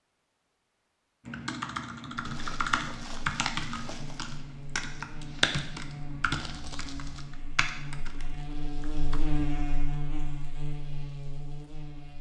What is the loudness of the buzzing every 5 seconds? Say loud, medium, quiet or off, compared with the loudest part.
medium, loud, loud.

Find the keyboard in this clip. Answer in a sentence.
You can hear the keyboard from 1.2 to 9.2 s.